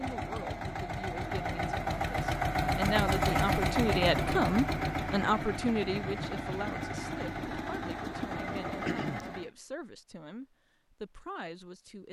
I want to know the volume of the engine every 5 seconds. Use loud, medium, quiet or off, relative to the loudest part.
loud, medium, off.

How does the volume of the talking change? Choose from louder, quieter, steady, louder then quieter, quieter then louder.
louder then quieter.